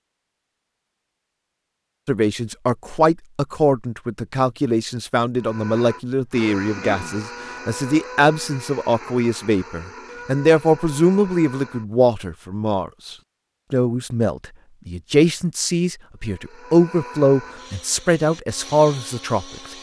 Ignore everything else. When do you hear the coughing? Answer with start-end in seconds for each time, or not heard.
6.7-7.2.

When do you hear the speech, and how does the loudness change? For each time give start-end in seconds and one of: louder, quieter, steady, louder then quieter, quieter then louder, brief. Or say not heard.
2.0-19.4 steady.